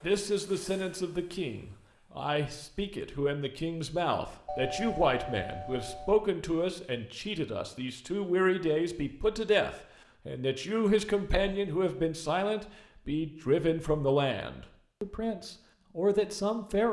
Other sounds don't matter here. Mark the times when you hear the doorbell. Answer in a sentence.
You can hear the doorbell from 4.5 to 6.1 s.